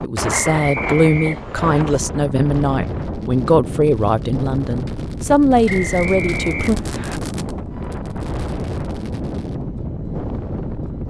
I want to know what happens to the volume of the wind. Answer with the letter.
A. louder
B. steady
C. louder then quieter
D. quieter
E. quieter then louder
B.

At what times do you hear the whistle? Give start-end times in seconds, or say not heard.
0.3-1.9, 5.7-7.2.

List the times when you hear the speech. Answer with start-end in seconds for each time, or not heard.
0.0-6.8.